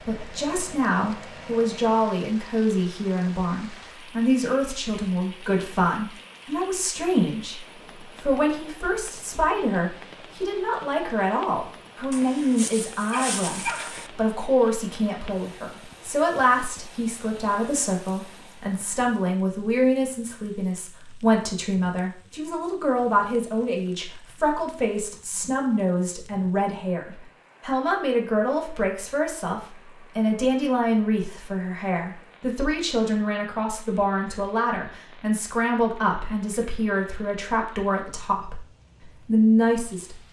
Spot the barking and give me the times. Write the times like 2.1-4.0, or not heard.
12.1-14.1.